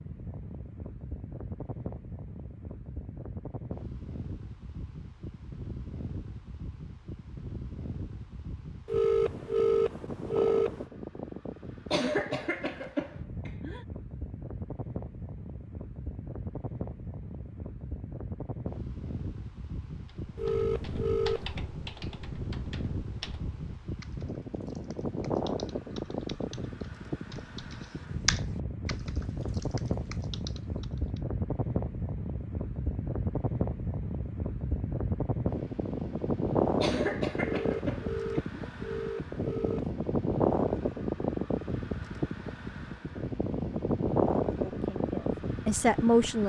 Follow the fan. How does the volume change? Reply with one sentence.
The loudness of the fan goes up.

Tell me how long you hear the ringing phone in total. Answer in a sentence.
You can hear the ringing phone for 6 seconds altogether.